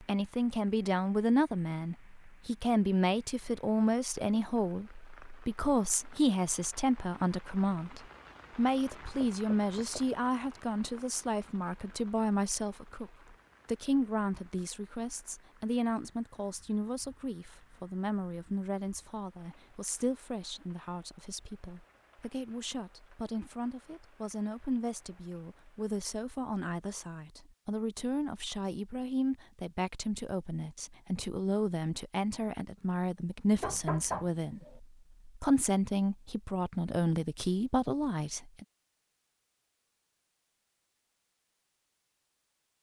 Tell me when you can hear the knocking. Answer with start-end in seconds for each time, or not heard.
9.0-10.1, 33.6-34.8.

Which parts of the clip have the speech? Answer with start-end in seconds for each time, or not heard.
0.0-38.6.